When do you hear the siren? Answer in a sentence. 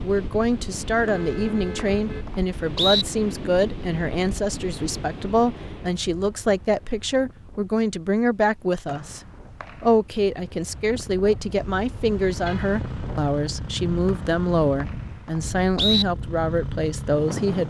The siren can't be heard in this clip.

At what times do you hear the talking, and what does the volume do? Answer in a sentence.
You can hear the talking from 0.0 to 9.2 s, at a steady volume; and from 9.8 to 17.6 s, at a steady volume.